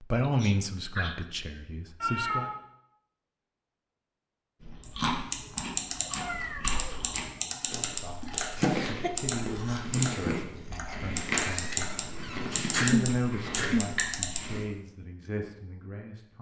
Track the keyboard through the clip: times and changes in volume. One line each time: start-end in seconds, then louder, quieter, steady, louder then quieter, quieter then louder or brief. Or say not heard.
4.8-14.4 steady.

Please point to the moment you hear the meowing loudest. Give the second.
2 s.